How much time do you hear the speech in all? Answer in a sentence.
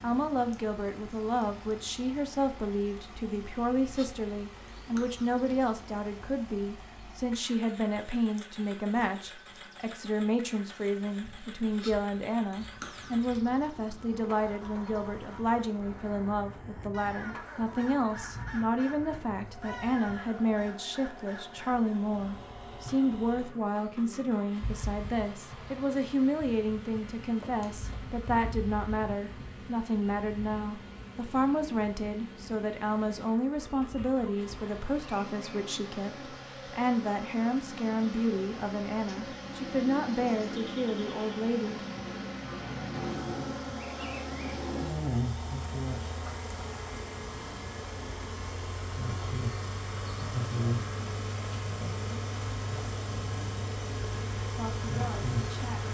You can hear the speech for 43 seconds altogether.